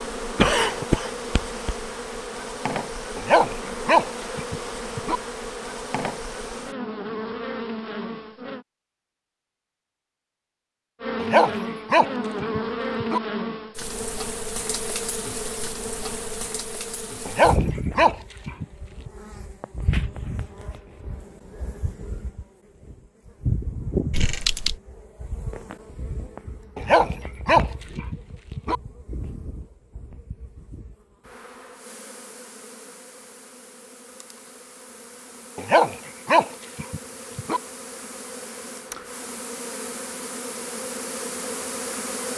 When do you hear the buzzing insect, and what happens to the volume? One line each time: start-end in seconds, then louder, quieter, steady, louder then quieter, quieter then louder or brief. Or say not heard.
0.0-8.7 steady
11.0-42.3 quieter then louder.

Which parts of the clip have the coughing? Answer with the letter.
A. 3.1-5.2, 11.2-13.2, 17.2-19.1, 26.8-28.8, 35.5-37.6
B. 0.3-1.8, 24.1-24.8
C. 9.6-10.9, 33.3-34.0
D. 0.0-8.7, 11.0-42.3
B.